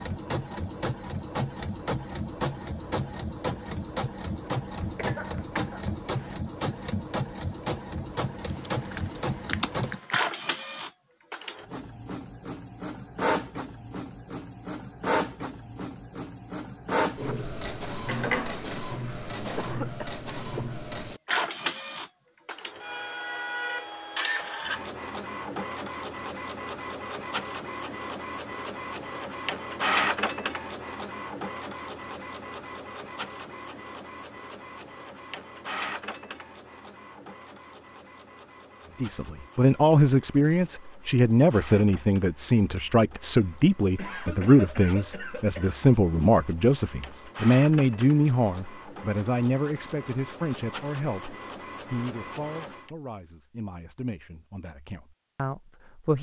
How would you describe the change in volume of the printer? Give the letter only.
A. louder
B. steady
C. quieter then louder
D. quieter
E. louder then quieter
D.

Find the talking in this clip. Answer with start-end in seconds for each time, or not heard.
39.0-56.1.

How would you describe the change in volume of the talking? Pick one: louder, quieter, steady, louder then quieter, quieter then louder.
quieter.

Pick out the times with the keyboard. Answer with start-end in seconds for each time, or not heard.
8.4-10.2.